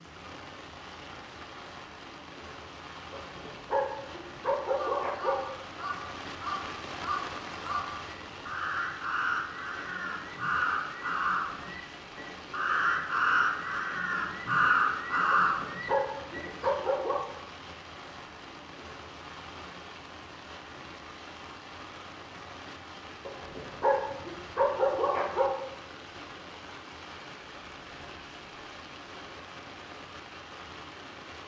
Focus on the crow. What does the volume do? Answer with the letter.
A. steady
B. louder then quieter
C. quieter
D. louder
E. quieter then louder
D.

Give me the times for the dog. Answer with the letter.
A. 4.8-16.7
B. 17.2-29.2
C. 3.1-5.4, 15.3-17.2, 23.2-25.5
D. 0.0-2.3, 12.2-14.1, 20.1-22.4
C.